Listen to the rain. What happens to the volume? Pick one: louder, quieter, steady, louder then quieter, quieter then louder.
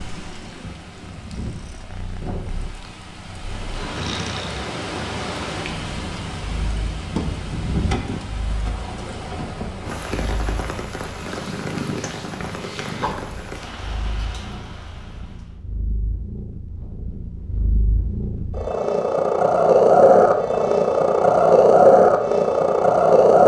louder then quieter.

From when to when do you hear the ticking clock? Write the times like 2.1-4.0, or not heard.
not heard.